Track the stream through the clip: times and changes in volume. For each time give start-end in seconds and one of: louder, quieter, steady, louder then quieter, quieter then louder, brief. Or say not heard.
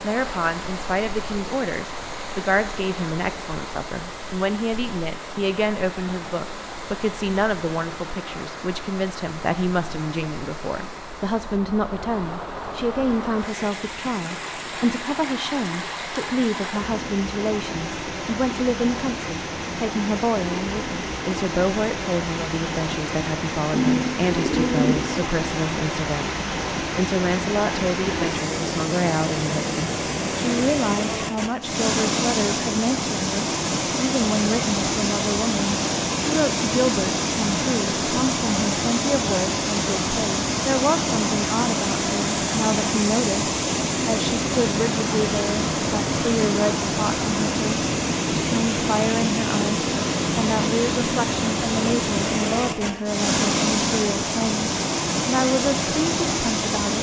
0.0-56.9 louder.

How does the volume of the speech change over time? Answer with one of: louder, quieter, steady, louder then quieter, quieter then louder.
steady.